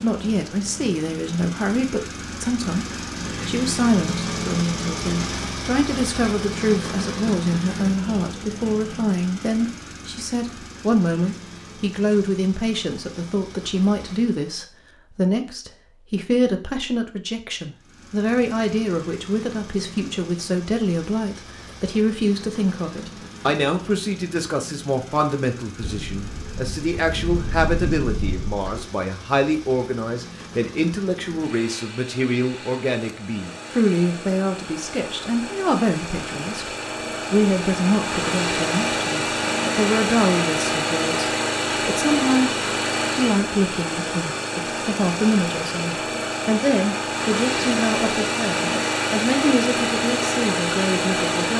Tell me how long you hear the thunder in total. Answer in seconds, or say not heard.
3 s.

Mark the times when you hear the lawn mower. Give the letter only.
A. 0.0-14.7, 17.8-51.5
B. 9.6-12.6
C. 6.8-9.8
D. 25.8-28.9
A.